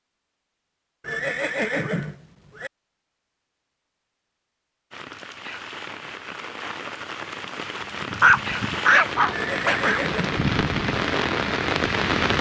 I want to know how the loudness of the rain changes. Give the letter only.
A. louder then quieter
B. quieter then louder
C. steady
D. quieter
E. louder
E.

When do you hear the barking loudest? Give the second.
8 s.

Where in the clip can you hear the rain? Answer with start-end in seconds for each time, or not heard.
4.9-12.3.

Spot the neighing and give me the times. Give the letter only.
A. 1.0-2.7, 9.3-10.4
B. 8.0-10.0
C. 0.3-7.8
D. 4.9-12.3
A.